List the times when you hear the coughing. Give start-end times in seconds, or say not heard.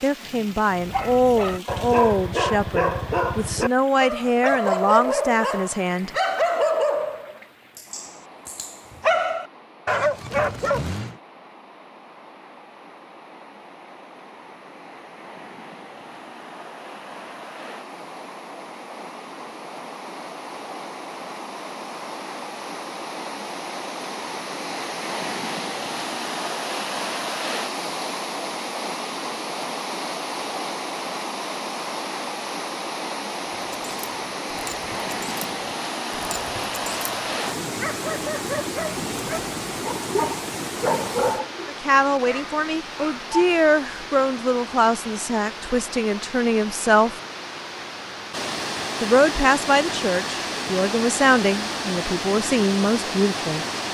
not heard.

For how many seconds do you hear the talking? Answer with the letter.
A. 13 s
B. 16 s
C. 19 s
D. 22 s
B.